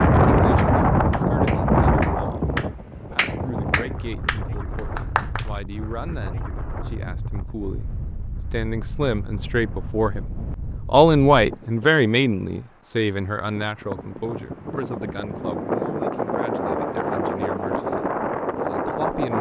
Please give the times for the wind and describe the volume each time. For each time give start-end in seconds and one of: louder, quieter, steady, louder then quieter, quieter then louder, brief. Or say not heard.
0.0-19.3 quieter then louder.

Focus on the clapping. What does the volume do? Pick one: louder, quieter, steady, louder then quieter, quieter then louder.
louder then quieter.